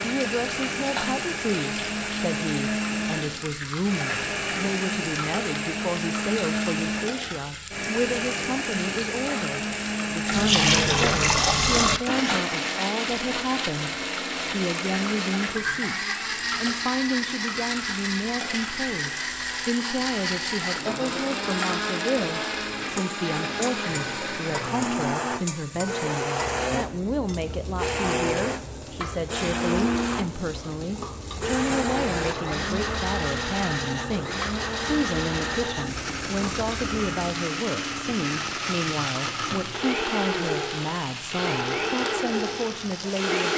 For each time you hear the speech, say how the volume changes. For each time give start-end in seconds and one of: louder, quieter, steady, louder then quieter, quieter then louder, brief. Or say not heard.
0.0-43.5 steady.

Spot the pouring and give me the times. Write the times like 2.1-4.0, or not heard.
10.3-12.0, 31.3-33.0.